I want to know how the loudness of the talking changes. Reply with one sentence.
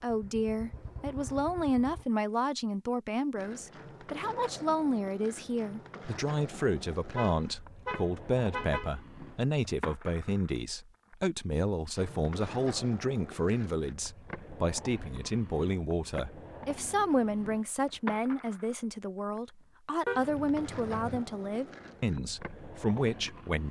The loudness of the talking stays about the same.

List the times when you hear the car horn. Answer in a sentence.
The car horn can be heard from 7.2 to 9.0 s and from 20.1 to 21.2 s.